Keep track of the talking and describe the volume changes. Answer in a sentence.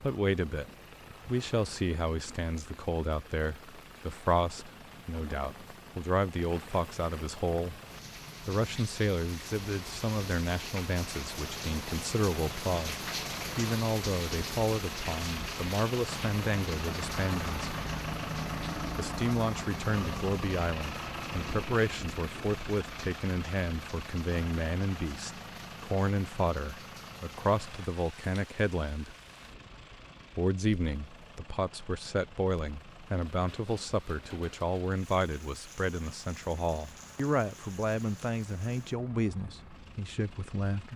The loudness of the talking stays about the same.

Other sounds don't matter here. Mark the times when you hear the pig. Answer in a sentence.
You can't hear the pig here.